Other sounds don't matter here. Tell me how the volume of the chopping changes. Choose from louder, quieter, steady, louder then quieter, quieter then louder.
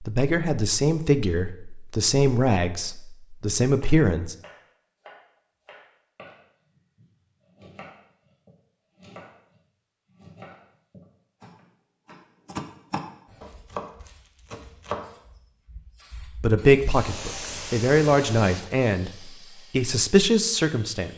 louder.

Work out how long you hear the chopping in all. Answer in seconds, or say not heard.
11 s.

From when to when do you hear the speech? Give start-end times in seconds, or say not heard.
0.0-4.3, 16.4-21.1.